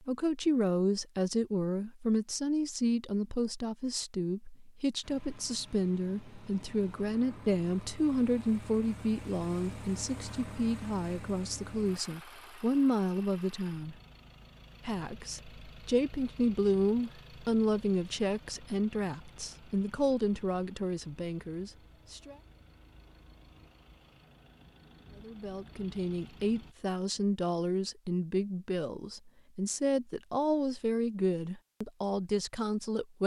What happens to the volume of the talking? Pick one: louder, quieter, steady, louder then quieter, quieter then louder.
steady.